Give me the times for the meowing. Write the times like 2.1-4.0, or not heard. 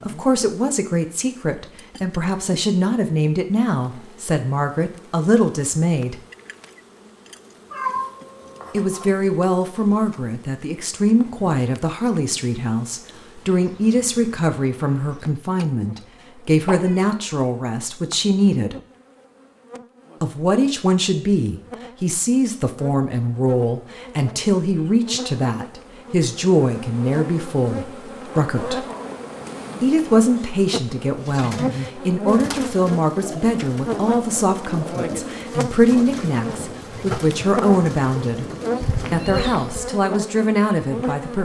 7.7-9.1, 16.6-17.1, 38.8-39.9.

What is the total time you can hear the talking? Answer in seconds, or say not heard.
36 s.